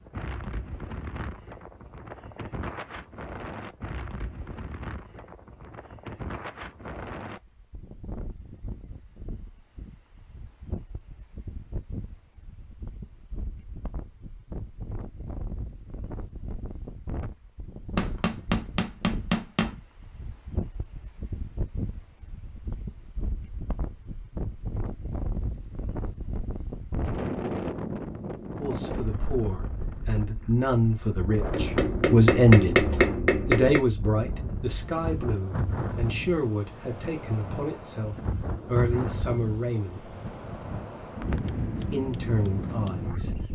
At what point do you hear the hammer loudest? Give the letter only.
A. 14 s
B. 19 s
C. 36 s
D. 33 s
D.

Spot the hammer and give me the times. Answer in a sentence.
You can hear the hammer from 17.9 to 19.8 s and from 31.5 to 33.9 s.